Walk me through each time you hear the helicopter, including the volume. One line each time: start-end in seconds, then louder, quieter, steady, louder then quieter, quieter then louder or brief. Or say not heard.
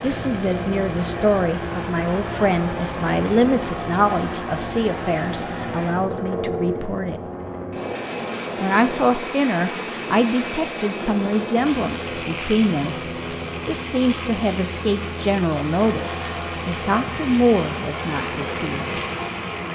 0.0-19.6 steady.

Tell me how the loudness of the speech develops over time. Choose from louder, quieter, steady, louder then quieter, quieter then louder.
steady.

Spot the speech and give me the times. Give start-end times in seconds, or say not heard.
0.0-7.2, 8.6-12.9, 13.7-19.0.